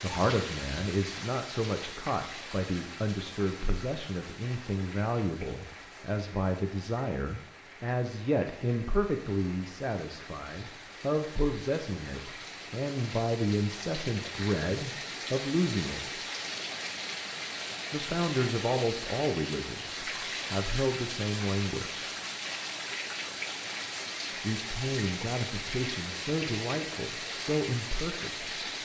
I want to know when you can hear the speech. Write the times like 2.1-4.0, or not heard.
0.0-16.2, 17.9-22.1, 24.4-28.4.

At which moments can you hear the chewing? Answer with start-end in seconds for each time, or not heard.
not heard.